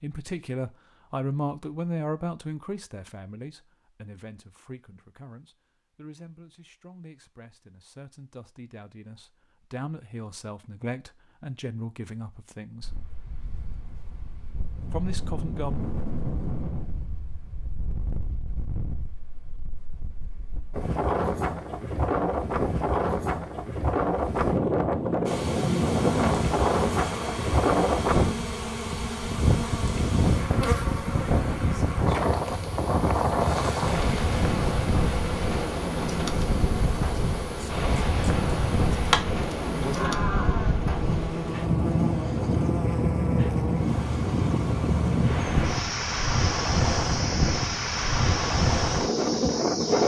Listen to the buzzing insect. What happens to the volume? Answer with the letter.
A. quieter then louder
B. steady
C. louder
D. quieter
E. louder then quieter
B.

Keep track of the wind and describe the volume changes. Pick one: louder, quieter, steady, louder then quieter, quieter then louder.
louder.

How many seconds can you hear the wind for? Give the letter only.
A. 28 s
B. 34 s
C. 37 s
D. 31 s
C.